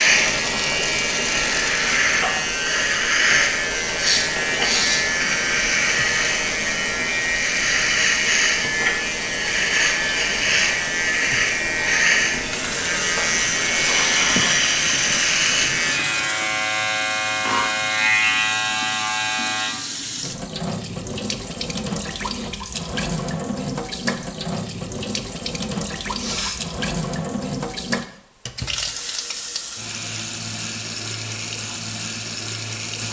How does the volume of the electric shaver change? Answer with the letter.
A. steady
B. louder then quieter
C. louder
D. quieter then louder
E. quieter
A.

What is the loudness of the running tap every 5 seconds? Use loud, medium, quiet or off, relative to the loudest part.
loud, medium, loud, loud, loud, loud, loud.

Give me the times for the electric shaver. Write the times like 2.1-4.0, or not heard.
0.0-19.8.